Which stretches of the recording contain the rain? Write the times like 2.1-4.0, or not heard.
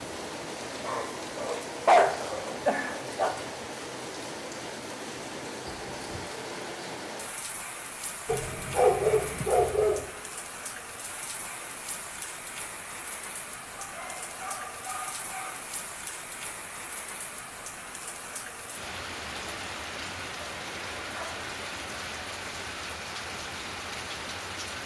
0.0-24.8.